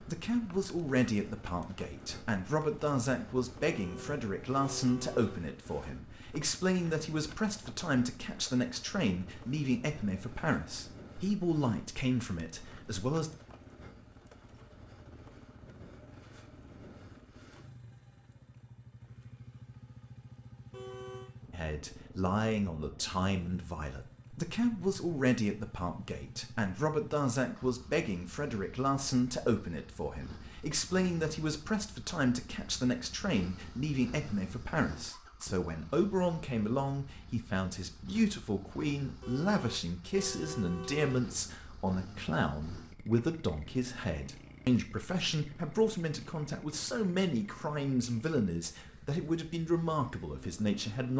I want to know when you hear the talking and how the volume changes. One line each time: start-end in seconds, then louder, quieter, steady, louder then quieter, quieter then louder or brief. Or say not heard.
0.0-13.3 steady
21.5-51.1 steady.